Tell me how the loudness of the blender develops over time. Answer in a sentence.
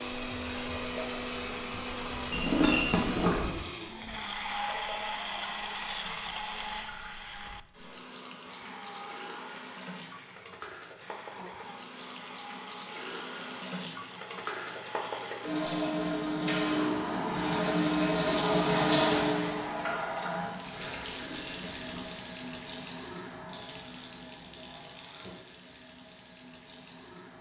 The volume of the blender goes down.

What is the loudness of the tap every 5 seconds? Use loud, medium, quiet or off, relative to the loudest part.
quiet, quiet, quiet, loud, medium, quiet.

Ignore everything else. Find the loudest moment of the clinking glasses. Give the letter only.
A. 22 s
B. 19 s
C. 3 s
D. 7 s
C.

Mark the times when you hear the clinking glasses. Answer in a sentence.
The clinking glasses can be heard from 2.3 to 3.6 s and from 21.1 to 22.1 s.